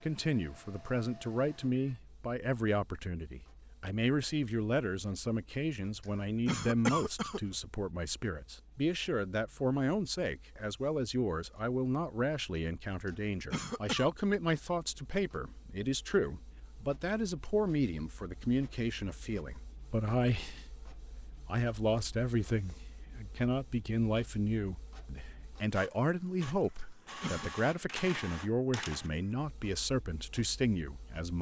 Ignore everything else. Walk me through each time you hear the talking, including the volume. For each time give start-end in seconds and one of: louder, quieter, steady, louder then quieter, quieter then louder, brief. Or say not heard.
0.0-31.3 steady.